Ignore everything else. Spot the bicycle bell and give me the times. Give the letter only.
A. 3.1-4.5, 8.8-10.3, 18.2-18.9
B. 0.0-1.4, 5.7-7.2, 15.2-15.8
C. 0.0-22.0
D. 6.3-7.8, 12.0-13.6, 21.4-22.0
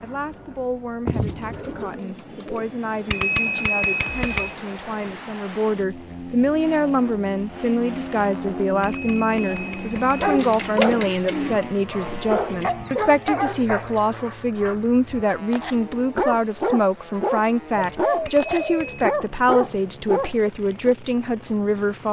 A.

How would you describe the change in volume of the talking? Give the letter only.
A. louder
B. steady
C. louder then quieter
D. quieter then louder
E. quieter
A.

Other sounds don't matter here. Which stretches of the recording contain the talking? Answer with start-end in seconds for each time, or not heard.
0.0-22.0.